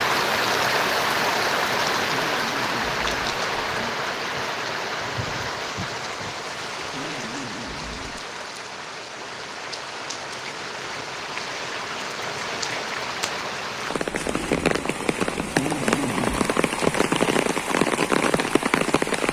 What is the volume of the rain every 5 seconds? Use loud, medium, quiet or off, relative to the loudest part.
loud, medium, medium, loud.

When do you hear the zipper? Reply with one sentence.
The zipper can be heard from 2.1 to 3.9 s, from 6.9 to 8.2 s and from 15.6 to 16.5 s.